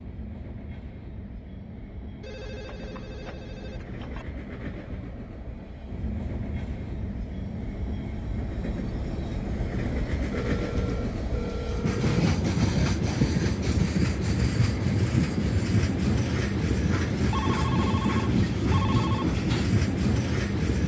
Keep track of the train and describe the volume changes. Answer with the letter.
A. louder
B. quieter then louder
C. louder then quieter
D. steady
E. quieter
A.